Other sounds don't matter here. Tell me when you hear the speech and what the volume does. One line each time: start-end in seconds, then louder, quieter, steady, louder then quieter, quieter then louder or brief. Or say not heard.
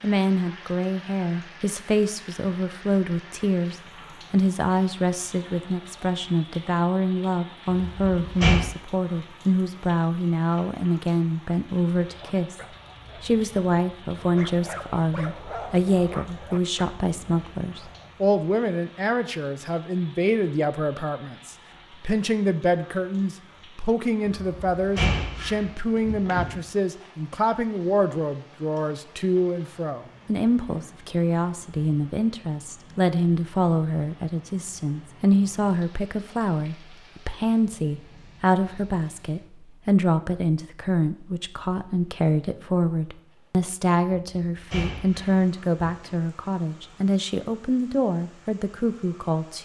0.0-49.6 steady.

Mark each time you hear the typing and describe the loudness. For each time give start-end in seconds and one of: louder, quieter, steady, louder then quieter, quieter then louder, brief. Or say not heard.
not heard.